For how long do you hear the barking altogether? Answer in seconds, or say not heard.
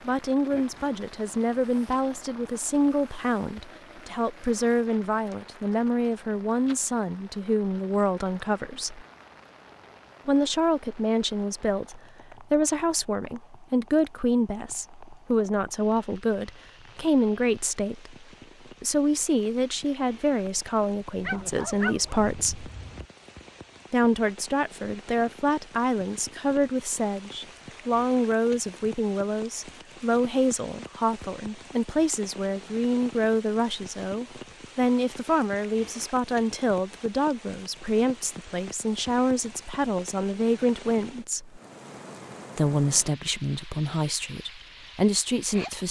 2 s.